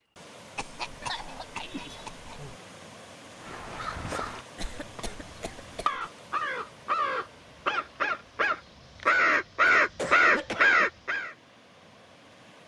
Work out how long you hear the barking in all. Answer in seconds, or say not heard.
not heard.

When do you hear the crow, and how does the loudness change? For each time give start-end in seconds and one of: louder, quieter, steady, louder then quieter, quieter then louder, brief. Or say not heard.
3.4-11.3 louder.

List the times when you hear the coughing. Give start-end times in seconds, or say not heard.
0.6-2.5, 4.5-6.0, 9.9-10.8.